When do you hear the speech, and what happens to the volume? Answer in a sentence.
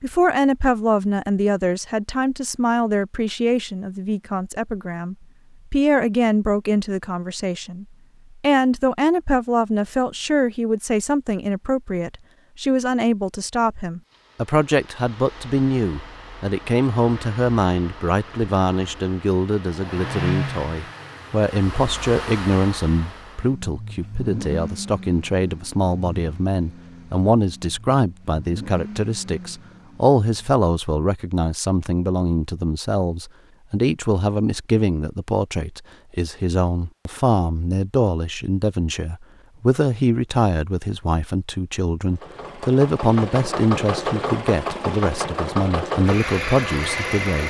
You can hear the speech from 0.0 to 47.4 s, at a steady volume.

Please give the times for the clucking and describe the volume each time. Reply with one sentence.
You can't hear the clucking here.